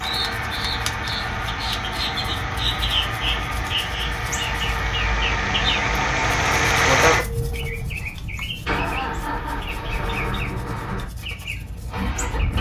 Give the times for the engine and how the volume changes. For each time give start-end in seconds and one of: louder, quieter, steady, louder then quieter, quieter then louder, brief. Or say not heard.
0.0-12.5 louder then quieter.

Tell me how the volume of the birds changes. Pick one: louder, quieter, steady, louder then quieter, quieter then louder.
quieter.